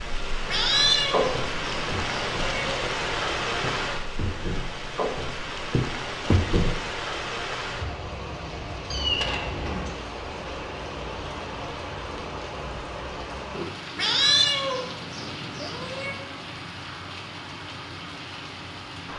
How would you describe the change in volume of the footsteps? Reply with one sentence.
The loudness of the footsteps goes down, then up.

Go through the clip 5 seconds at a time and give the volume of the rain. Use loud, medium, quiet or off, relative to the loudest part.
loud, loud, medium, medium.